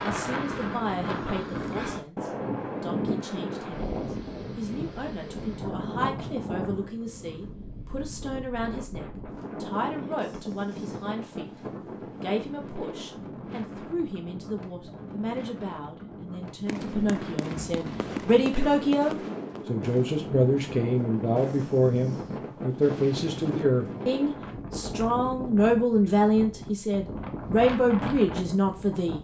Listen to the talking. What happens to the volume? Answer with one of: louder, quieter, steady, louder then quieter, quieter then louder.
louder.